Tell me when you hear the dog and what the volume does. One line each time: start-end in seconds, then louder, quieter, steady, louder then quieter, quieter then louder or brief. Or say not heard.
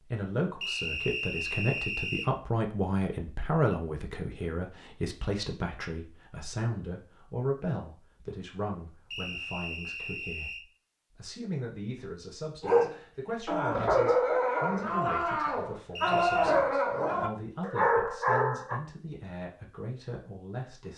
12.6-18.8 steady.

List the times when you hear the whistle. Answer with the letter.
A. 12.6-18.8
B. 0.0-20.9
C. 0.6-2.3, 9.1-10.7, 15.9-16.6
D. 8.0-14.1
C.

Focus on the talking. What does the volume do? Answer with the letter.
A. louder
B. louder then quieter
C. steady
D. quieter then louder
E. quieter
E.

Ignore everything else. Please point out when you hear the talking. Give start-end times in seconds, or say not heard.
0.0-20.9.